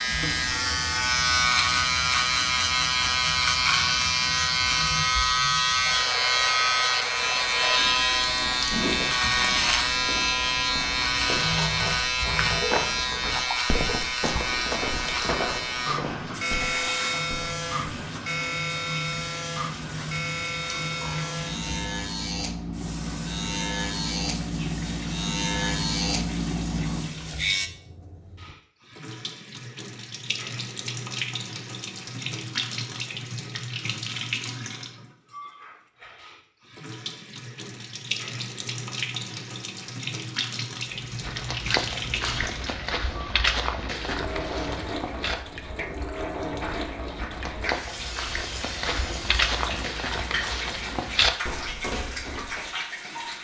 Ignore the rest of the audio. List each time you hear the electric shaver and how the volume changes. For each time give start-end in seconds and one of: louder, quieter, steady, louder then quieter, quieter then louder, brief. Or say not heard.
0.0-27.7 quieter.